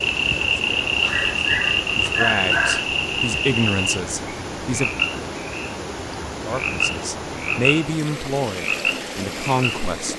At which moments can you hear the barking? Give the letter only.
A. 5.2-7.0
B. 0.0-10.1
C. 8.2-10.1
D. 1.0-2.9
D.